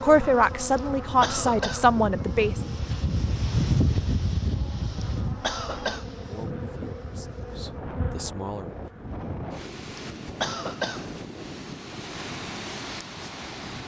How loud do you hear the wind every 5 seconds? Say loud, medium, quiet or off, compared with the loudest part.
loud, medium, medium.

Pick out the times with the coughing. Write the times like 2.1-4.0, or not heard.
0.8-1.9, 5.0-6.0, 9.9-11.2.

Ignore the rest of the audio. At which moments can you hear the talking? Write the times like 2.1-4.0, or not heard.
0.0-2.5, 6.1-8.8.